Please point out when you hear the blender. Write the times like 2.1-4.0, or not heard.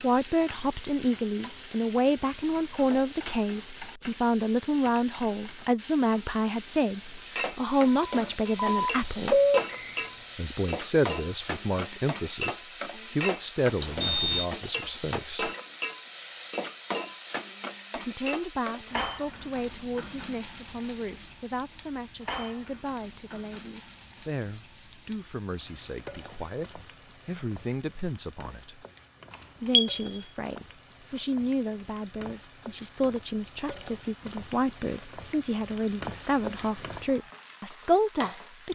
not heard.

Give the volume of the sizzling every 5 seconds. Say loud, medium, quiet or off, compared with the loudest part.
loud, loud, loud, loud, medium, quiet, quiet, medium.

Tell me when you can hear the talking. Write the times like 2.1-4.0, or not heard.
0.0-9.4, 10.3-15.5, 17.9-28.8, 29.6-38.7.